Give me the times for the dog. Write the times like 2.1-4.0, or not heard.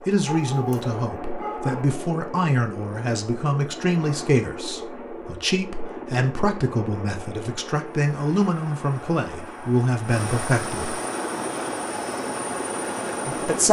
0.2-1.9.